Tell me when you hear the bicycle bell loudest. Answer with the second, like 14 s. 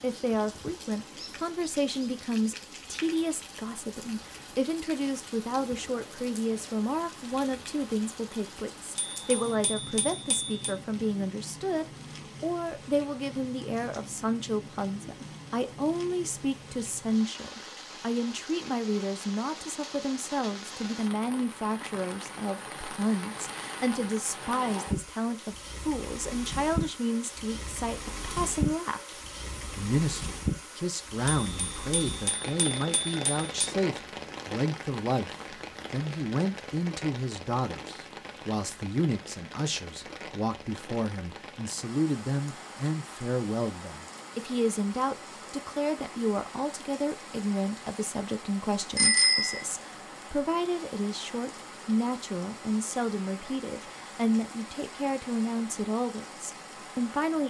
49 s.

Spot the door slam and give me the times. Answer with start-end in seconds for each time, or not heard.
not heard.